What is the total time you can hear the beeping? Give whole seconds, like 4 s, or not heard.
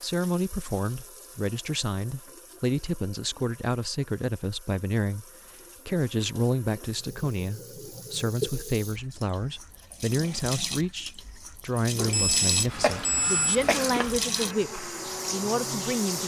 2 s.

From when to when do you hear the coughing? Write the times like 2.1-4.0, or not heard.
12.8-14.2.